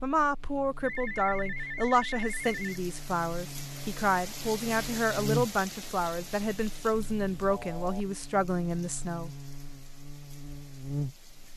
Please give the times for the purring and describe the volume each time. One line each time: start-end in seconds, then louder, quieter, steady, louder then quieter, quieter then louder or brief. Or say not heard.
not heard.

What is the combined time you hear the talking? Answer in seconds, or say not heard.
9 s.